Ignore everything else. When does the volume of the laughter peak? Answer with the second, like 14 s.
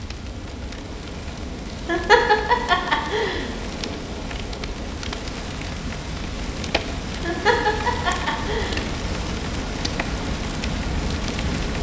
2 s.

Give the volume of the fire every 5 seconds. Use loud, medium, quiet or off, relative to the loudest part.
medium, loud, loud.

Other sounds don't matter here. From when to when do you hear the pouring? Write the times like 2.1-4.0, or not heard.
not heard.